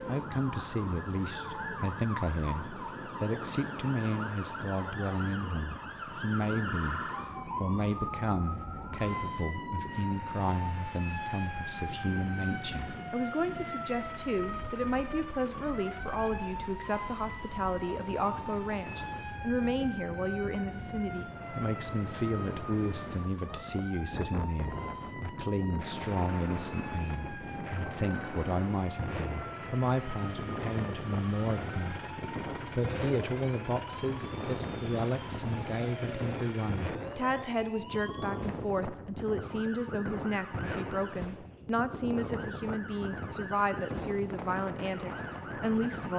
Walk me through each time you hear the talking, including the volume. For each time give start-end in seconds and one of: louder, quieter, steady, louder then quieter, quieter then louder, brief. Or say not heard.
0.1-46.1 steady.